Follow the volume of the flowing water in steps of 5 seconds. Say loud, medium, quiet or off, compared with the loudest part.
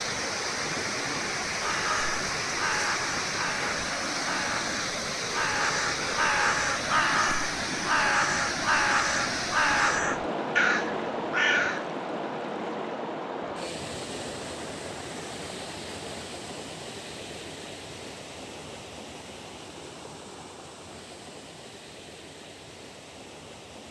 loud, loud, loud, medium, quiet.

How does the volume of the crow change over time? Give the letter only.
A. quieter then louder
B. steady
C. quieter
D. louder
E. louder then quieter
D.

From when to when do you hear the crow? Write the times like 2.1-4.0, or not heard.
1.6-11.8.